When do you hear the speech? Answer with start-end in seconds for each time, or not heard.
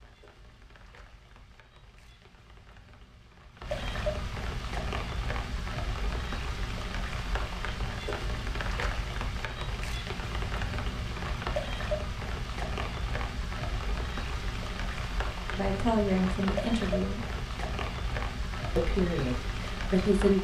15.5-17.2, 18.8-20.3.